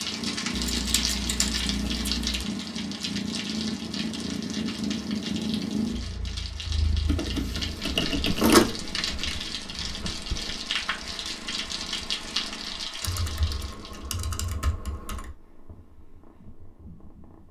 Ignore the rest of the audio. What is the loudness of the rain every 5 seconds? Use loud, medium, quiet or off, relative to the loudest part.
loud, loud, loud, off.